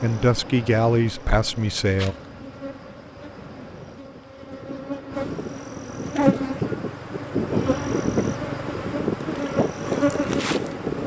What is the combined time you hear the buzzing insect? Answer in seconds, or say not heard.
11 s.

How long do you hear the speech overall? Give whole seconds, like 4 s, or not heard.
2 s.